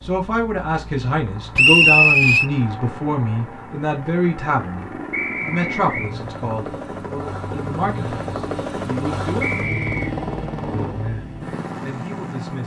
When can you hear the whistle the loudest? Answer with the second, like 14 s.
2 s.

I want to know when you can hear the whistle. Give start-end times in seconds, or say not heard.
1.6-2.5, 5.1-6.2, 9.4-10.2.